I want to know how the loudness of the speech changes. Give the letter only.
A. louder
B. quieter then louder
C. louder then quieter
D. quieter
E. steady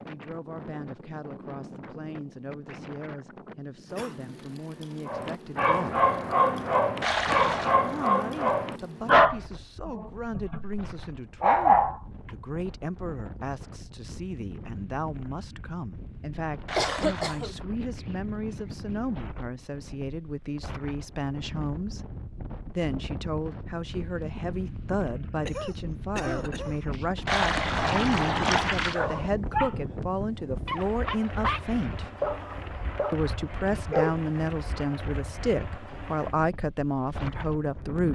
A.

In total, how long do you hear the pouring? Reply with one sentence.
The pouring can be heard for 3 seconds in total.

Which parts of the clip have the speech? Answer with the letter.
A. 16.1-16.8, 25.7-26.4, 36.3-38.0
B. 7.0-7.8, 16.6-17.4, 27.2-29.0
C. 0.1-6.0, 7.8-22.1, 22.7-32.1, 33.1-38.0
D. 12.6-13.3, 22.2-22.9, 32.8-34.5
C.